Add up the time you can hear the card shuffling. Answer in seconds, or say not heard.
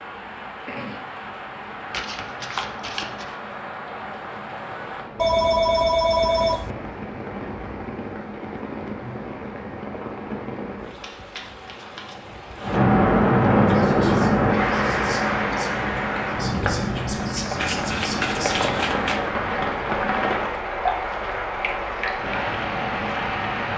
4 s.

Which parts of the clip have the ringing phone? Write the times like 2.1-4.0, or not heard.
5.2-6.7.